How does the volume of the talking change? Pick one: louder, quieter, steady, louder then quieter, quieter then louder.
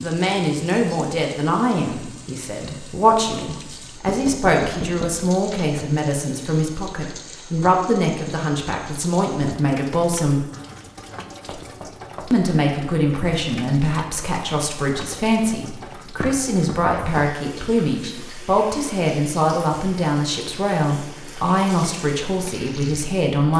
steady.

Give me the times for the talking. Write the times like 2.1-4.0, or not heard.
0.0-10.4, 12.3-23.5.